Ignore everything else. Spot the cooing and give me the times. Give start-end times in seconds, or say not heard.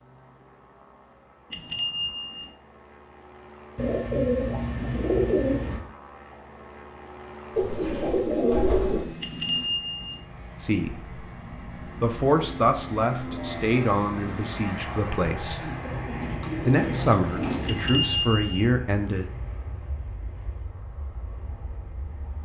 3.8-5.8, 7.5-9.1, 15.6-18.1.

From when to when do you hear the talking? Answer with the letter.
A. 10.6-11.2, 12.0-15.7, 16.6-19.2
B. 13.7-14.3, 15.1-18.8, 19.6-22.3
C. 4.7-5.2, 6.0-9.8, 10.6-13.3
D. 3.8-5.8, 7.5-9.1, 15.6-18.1
A.